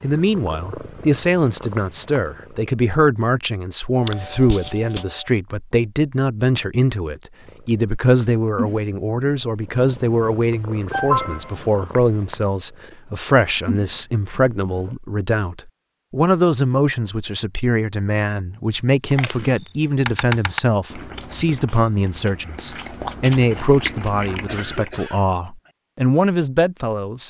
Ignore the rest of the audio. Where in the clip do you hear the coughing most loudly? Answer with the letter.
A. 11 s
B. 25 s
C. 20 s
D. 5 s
A.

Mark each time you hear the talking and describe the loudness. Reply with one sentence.
You can hear the talking from 0.0 to 27.2 s, at a steady volume.